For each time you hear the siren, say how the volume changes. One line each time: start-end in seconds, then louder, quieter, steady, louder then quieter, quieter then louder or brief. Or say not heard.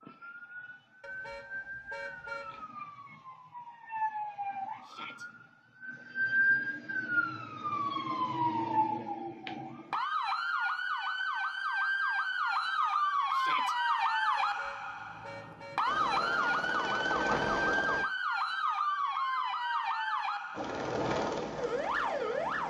0.0-22.6 louder.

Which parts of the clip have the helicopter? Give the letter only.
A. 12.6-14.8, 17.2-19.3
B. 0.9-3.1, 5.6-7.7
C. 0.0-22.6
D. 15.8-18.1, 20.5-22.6
D.